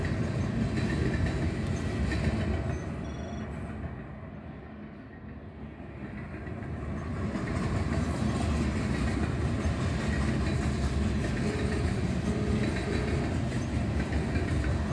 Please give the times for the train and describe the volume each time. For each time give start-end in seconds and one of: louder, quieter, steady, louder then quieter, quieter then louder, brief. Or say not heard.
0.0-14.8 quieter then louder.